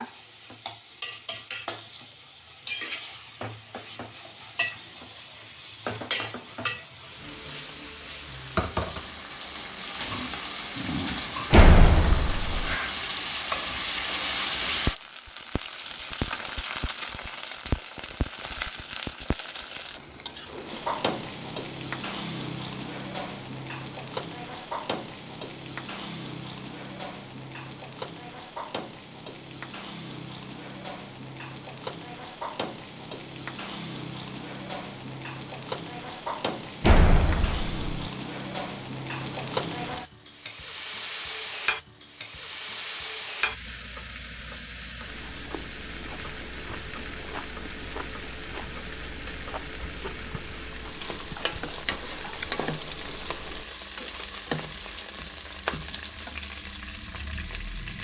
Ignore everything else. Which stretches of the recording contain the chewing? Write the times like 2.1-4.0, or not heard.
45.0-53.6.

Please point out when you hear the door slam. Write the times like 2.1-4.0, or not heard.
11.5-12.8, 36.8-37.9.